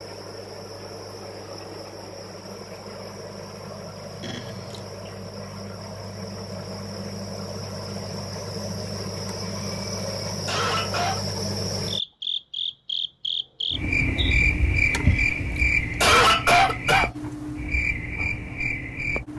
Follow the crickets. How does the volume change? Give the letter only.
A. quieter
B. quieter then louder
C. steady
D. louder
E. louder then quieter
D.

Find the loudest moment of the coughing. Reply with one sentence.
The loudest moment of the coughing is at 16 seconds.